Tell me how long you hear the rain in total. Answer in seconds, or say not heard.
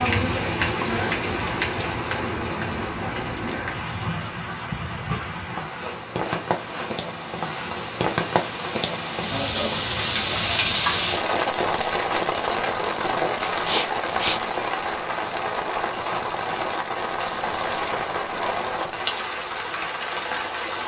21 s.